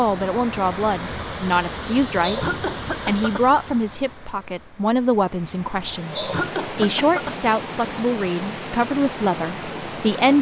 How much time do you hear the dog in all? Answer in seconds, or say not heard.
not heard.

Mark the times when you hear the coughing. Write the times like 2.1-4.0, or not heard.
2.2-3.5, 6.1-7.3.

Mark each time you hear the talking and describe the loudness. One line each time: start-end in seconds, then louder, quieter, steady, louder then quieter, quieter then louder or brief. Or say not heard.
0.0-2.5 brief
3.0-10.3 steady.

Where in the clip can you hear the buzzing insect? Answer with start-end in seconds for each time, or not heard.
not heard.